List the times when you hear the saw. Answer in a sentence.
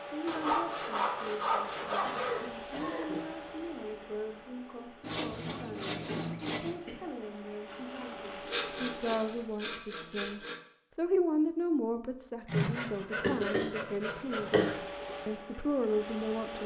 The saw can be heard from 0.2 to 2.5 s, from 5.0 to 6.8 s, from 8.4 to 10.6 s and from 12.4 to 14.6 s.